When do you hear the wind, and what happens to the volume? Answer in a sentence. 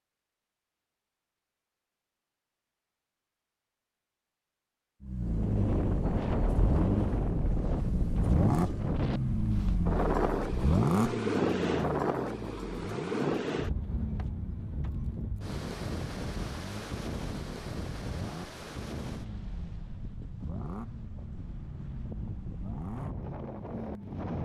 The wind can be heard from 5.2 to 24.3 s, getting quieter.